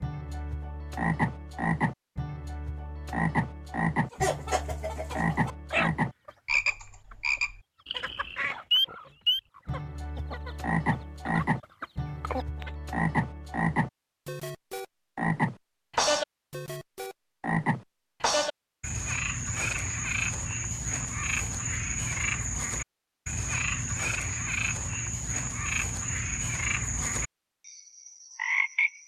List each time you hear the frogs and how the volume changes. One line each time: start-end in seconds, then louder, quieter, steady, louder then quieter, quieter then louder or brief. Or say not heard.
0.0-29.0 steady.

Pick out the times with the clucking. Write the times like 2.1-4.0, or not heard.
4.1-12.7.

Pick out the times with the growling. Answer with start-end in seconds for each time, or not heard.
not heard.